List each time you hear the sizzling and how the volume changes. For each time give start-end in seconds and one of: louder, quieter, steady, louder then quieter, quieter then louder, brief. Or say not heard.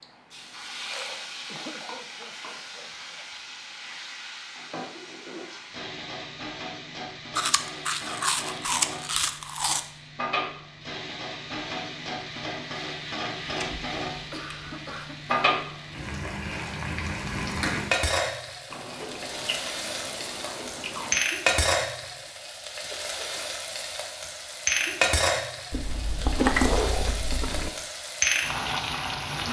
0.3-29.4 louder.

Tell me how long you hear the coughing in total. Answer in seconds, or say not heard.
4 s.